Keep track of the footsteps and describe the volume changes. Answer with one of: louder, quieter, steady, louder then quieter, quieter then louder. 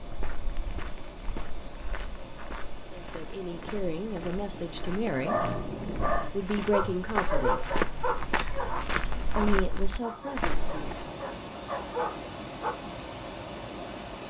louder.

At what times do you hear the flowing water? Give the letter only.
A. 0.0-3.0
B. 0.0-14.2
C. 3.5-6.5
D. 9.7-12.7
B.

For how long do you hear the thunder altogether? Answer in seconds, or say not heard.
3 s.